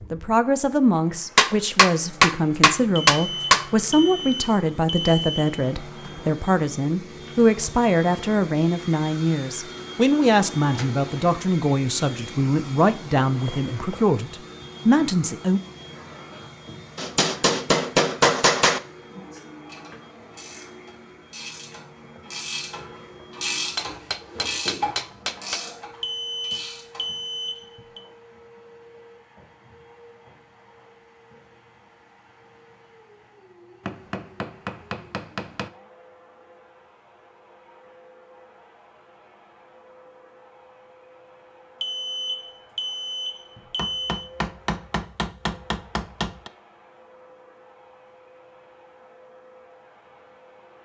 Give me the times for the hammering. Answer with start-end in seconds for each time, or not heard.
1.4-3.6, 16.9-18.8, 23.8-25.6, 33.9-35.7, 43.8-46.5.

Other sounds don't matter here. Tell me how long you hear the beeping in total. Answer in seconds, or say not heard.
7 s.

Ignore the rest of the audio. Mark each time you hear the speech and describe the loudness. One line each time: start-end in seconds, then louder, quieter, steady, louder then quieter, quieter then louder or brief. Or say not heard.
0.1-15.6 steady.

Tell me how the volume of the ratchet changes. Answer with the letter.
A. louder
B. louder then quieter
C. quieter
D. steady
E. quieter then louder
B.